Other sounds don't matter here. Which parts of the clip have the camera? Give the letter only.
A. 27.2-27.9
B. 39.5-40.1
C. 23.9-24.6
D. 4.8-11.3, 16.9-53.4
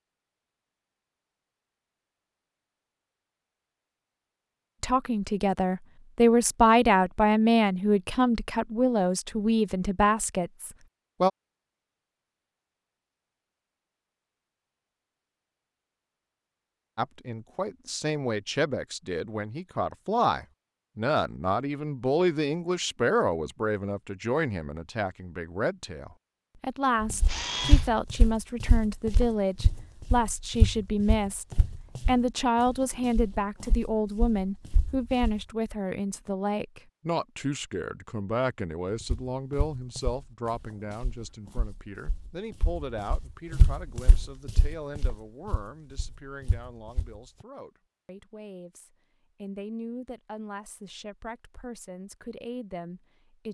A.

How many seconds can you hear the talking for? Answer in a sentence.
You can hear the talking for 43 seconds altogether.